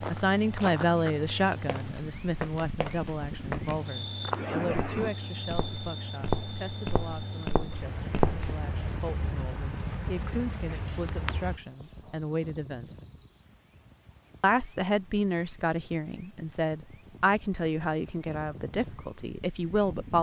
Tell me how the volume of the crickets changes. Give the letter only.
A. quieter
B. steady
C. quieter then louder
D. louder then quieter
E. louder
A.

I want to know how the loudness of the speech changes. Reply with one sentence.
The volume of the speech goes down, then up.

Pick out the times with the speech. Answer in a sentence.
The speech can be heard from 0.0 to 12.9 s and from 14.4 to 20.1 s.